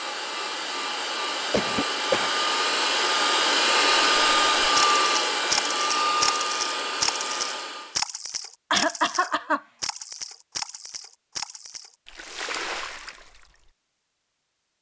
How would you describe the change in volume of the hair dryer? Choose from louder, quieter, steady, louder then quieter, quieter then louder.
louder then quieter.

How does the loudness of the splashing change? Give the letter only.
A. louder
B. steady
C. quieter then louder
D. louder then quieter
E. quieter
E.